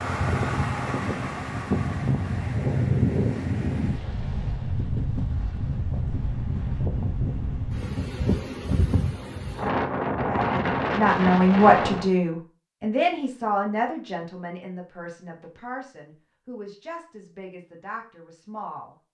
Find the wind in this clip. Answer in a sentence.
The wind can be heard from 0.0 to 12.1 s.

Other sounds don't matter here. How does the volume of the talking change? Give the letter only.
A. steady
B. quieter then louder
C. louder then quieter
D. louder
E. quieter
E.